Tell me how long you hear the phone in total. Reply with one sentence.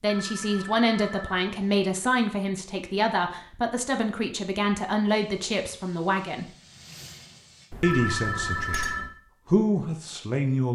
The phone can be heard for 3 seconds in total.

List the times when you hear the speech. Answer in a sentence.
You can hear the speech from 0.0 to 6.5 s and from 7.8 to 10.7 s.